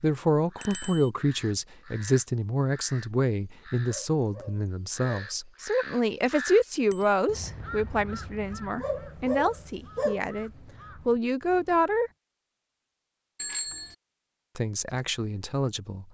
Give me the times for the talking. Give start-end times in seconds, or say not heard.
0.0-12.1, 14.6-16.0.